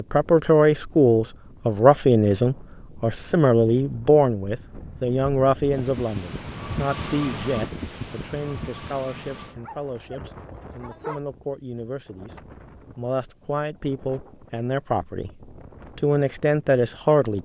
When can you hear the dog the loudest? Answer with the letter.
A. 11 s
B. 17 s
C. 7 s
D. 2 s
A.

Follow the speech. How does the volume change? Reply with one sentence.
The volume of the speech goes down, then up.